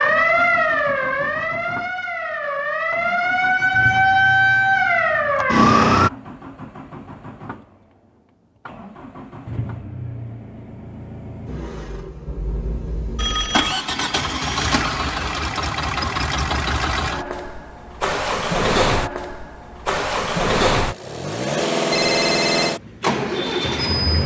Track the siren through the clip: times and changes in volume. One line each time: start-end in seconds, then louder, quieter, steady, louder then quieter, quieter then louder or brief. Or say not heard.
0.0-6.1 quieter then louder.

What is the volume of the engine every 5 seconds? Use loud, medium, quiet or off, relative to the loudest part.
quiet, quiet, medium, loud, loud.